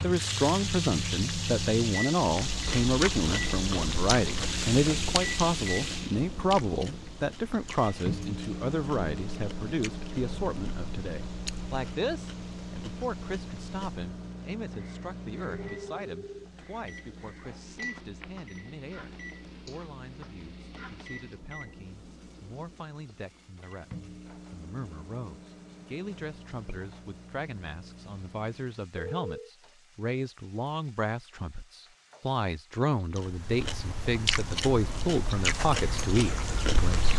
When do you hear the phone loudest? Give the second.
29 s.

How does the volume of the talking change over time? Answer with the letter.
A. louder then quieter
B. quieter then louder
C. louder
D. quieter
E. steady
B.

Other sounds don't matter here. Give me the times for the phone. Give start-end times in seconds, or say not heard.
15.7-16.5, 28.9-29.5.